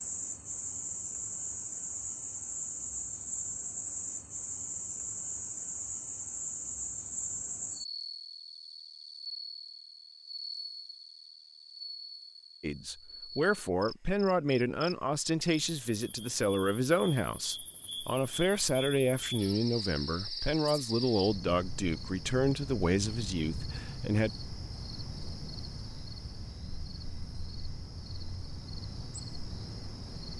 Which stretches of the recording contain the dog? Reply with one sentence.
The dog can't be heard in this clip.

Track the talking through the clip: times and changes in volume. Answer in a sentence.
The talking can be heard from 12.6 to 24.3 s, at a steady volume.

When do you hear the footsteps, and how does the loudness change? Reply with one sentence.
The footsteps can't be heard in this clip.